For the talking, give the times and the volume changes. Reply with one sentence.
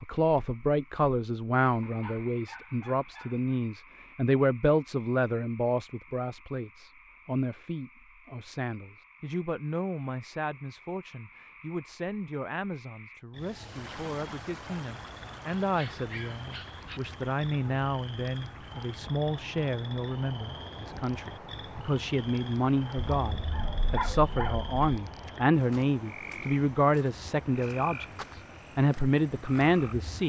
The talking can be heard from 0.0 to 30.2 s, getting quieter then louder.